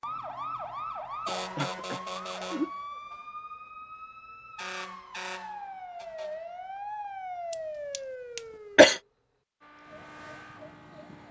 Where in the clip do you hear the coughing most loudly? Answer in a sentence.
The volume of the coughing peaks at 9 seconds.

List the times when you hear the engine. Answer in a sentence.
You can hear the engine from 9.6 to 11.2 s.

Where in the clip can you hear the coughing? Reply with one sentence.
The coughing can be heard from 1.2 to 2.7 s and from 7.9 to 9.0 s.